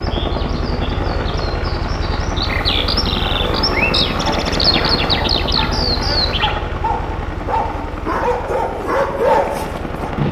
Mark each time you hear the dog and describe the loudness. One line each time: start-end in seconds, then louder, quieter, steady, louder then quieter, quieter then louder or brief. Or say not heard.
3.4-10.1 louder.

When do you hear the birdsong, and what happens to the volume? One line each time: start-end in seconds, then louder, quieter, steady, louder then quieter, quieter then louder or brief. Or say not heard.
0.0-6.5 louder.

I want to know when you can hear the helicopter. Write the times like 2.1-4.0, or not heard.
0.0-10.2.